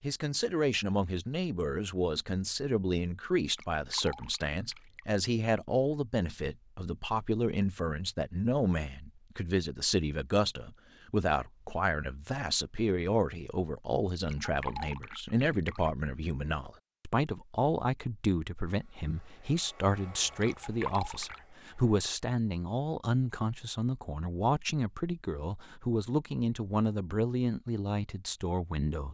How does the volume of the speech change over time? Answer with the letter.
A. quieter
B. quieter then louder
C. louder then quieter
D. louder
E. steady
E.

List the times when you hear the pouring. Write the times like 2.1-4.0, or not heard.
3.4-5.0, 14.1-15.9, 20.2-21.4.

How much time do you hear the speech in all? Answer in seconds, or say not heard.
29 s.